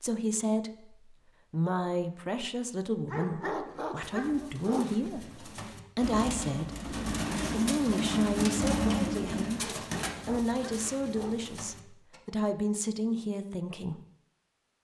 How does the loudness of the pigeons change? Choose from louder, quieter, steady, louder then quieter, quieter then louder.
louder then quieter.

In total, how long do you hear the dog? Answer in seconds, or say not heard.
4 s.